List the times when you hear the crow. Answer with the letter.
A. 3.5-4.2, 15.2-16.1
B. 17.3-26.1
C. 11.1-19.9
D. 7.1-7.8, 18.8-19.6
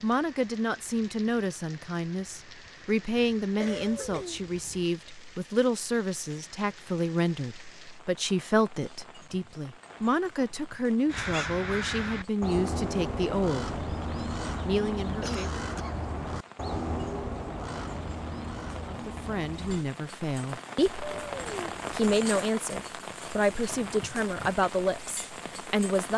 C.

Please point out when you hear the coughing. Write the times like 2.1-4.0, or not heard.
3.5-4.2, 15.2-16.1.